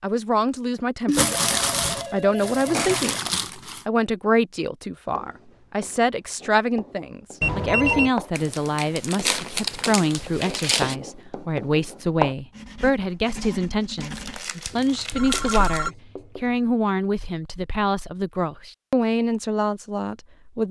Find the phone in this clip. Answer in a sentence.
The phone can be heard from 1.2 to 3.1 s, from 7.4 to 8.1 s and from 15.1 to 15.9 s.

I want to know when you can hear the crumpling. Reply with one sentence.
You can hear the crumpling from 1.1 to 3.9 s, from 8.3 to 10.9 s and from 14.0 to 15.9 s.